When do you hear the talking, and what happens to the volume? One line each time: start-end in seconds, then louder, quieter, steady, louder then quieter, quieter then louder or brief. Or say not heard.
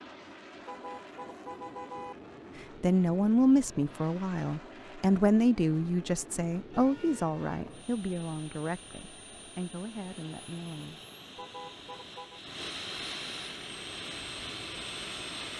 2.5-11.0 quieter.